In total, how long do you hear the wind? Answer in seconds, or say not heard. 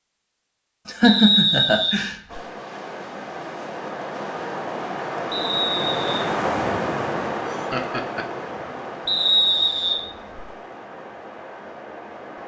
10 s.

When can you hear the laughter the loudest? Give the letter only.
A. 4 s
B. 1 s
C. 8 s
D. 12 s
B.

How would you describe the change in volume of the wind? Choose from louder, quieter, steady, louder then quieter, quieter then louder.
louder then quieter.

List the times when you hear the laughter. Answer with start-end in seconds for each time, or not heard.
0.8-2.1, 7.5-8.3.